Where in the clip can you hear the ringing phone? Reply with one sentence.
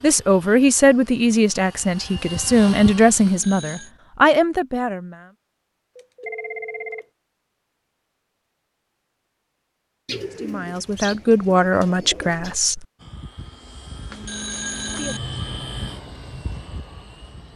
You can hear the ringing phone from 3.2 to 3.9 s, from 6.0 to 7.0 s and from 14.1 to 15.2 s.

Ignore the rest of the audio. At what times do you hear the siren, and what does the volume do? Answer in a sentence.
The siren can't be heard in this clip.